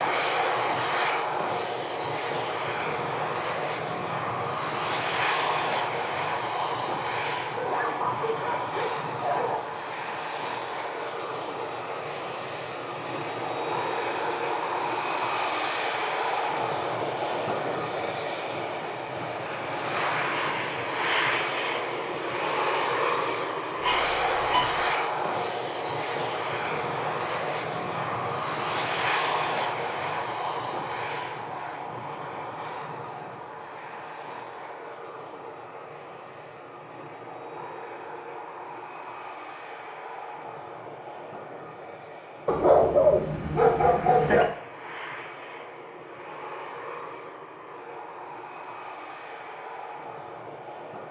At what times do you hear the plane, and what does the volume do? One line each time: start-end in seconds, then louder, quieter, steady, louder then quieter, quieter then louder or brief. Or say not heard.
0.0-51.0 quieter.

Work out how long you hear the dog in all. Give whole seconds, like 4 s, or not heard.
5 s.